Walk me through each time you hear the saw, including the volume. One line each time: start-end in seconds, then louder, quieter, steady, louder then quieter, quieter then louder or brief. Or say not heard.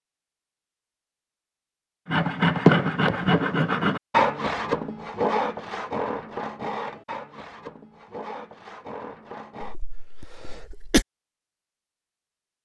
2.0-9.8 quieter.